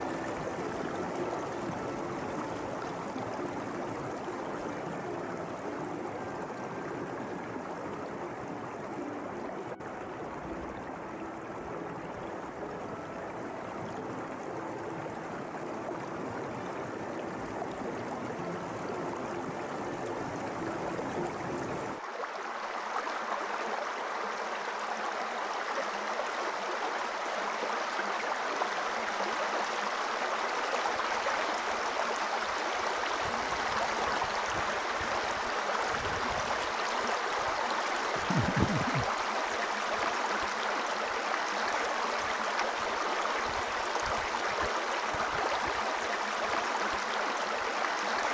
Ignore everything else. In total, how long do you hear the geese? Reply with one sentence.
The geese can't be heard in this clip.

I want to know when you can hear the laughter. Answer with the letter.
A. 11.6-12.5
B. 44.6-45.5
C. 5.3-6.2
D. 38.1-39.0
D.